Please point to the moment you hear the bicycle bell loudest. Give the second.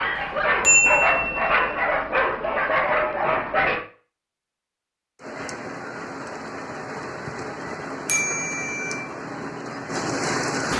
1 s.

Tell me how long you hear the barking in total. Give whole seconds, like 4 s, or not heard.
4 s.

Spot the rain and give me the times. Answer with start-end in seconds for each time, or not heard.
5.2-10.7.